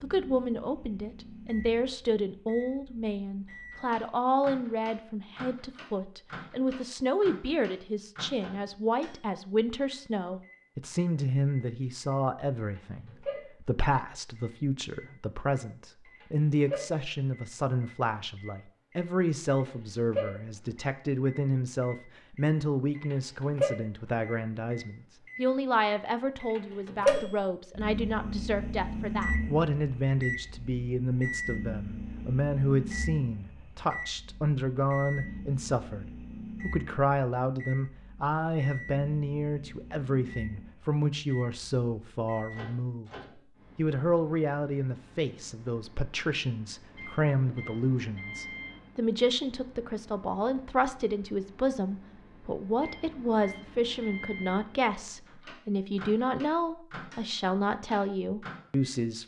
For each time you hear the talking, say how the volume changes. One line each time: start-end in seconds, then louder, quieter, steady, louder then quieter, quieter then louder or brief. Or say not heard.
0.0-43.1 steady
43.8-59.2 steady.